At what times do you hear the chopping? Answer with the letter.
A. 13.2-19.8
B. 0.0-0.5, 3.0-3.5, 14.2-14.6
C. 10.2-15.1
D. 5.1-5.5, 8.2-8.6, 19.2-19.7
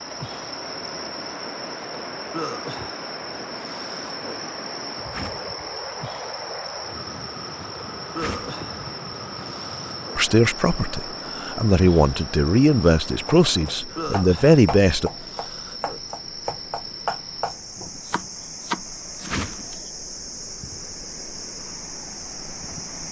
A.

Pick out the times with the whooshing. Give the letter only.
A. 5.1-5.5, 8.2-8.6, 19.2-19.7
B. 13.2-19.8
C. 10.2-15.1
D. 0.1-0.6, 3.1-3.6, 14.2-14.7
A.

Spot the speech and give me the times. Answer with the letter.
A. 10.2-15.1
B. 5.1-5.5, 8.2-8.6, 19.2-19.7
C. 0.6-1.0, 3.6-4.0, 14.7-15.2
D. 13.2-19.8
A.